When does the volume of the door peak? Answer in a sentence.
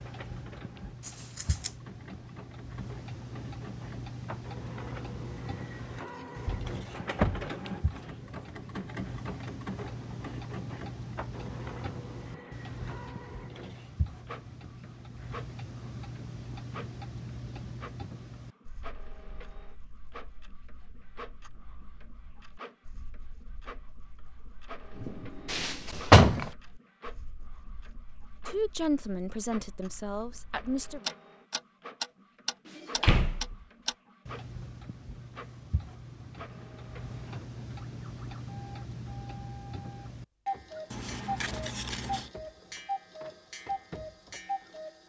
The loudest moment of the door is at 26 seconds.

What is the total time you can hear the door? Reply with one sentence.
The door can be heard for 3 seconds in total.